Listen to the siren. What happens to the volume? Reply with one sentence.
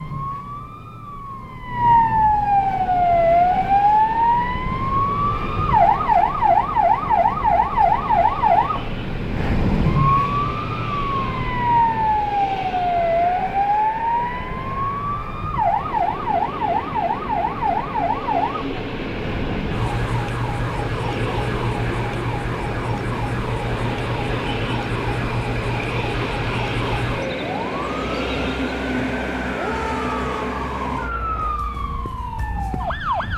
The volume of the siren goes down.